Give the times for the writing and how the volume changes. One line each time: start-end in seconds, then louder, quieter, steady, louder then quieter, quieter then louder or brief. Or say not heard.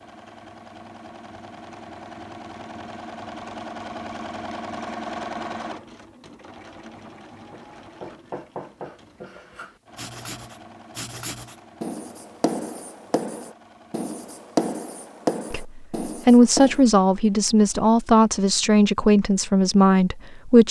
7.5-16.8 louder.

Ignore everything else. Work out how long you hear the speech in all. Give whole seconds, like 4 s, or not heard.
5 s.